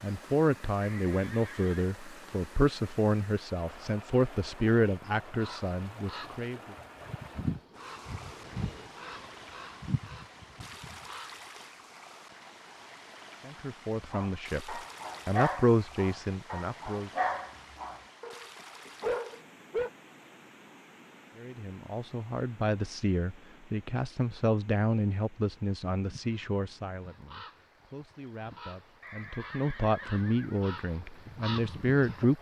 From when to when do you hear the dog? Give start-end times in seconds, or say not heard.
14.1-19.9.